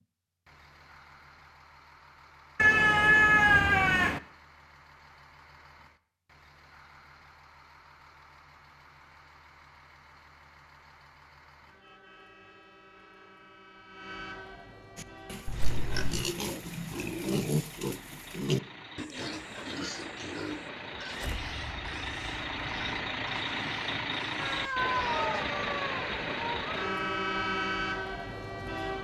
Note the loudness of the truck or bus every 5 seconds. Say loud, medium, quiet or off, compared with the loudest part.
quiet, quiet, quiet, quiet, loud, loud.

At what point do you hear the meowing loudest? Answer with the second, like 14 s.
3 s.